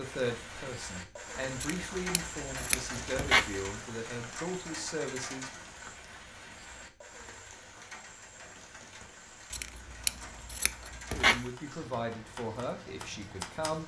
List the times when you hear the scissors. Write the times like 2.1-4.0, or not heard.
1.6-3.7, 9.5-11.4.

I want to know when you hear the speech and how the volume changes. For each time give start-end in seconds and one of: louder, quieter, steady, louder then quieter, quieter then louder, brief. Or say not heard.
0.0-5.6 louder
11.1-13.8 brief.